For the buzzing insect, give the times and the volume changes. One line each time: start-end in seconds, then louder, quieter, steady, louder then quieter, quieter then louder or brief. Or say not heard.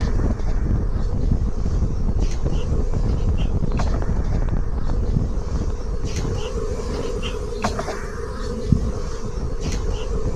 0.0-10.3 louder.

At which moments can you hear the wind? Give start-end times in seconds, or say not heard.
0.0-10.3.